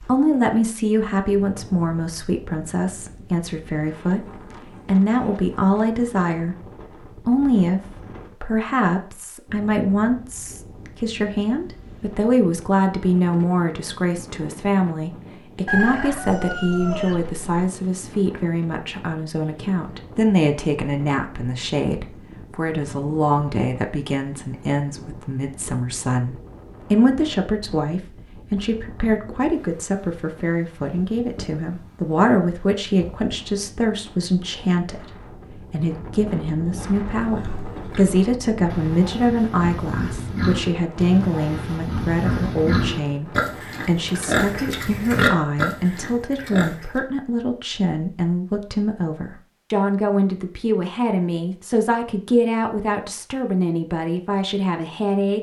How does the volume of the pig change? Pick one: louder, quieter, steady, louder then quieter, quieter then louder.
louder.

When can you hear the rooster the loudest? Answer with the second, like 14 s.
16 s.